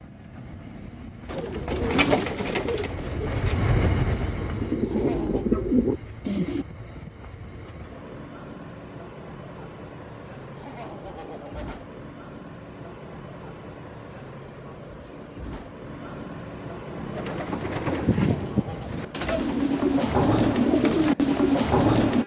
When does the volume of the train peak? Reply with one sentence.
The loudest moment of the train is at 4 seconds.